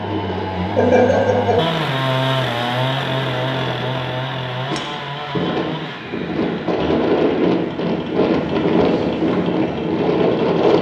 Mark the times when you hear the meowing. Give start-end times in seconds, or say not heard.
not heard.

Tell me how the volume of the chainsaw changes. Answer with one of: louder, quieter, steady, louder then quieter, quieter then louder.
quieter.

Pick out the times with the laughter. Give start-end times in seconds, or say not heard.
0.8-1.6.